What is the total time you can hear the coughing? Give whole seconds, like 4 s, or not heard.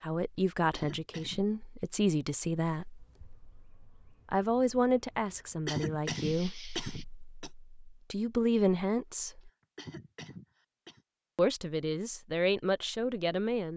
5 s.